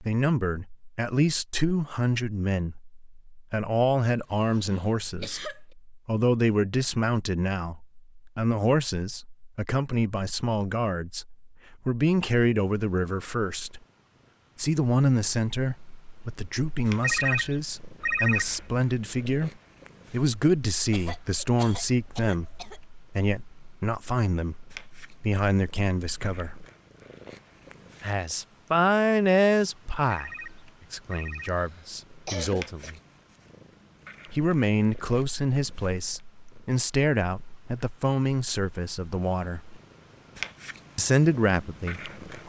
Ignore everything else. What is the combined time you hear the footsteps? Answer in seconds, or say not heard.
not heard.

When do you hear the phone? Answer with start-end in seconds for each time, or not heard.
17.0-18.6, 30.1-31.6.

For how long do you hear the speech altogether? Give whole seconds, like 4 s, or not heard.
37 s.